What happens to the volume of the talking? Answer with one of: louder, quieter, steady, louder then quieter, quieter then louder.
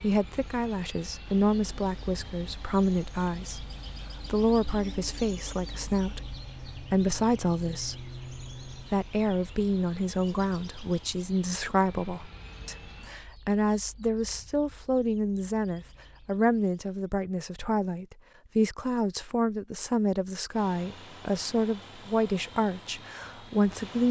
steady.